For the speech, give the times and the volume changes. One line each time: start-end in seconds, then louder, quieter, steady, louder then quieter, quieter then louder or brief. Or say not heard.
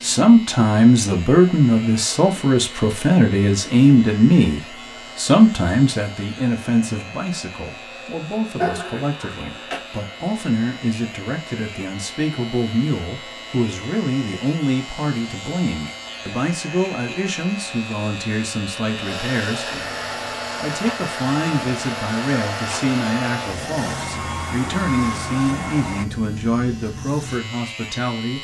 0.0-19.8 quieter
20.6-28.4 steady.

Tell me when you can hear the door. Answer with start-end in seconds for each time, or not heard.
not heard.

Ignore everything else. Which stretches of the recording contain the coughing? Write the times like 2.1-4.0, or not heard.
8.6-9.8.